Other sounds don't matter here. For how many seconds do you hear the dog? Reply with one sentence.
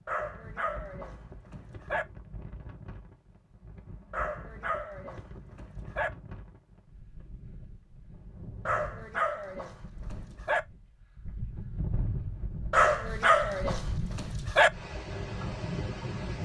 You can hear the dog for 8 seconds altogether.